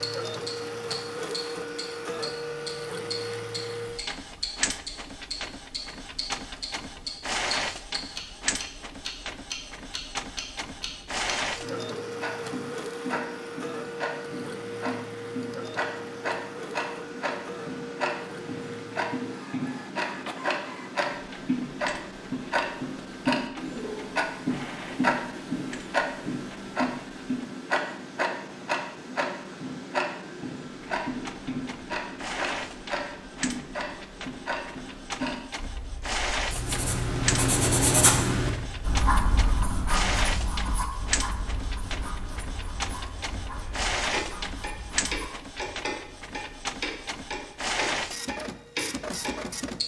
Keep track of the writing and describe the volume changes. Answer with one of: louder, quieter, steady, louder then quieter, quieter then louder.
quieter.